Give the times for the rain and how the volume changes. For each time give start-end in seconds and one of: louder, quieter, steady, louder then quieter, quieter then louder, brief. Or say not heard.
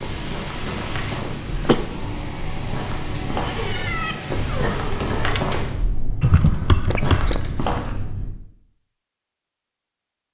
0.0-5.7 steady.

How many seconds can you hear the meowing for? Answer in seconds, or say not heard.
2 s.